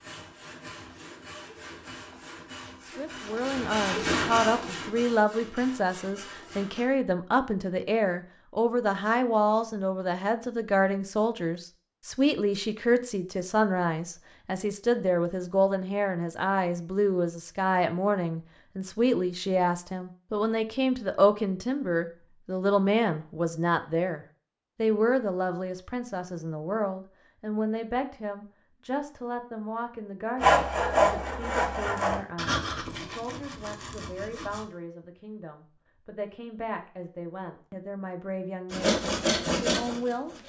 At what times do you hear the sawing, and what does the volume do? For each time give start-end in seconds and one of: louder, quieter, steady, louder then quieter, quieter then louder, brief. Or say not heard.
0.0-6.8 louder then quieter
30.4-34.6 quieter
38.7-40.4 brief.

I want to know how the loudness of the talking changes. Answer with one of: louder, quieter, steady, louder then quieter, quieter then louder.
quieter.